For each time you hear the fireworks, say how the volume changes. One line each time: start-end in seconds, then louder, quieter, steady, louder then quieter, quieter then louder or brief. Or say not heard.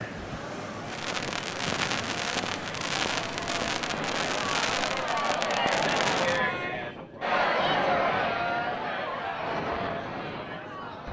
0.8-6.5 steady.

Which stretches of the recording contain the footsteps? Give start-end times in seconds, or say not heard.
not heard.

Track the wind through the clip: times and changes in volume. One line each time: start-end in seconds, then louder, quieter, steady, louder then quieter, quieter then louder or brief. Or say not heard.
0.0-11.0 steady.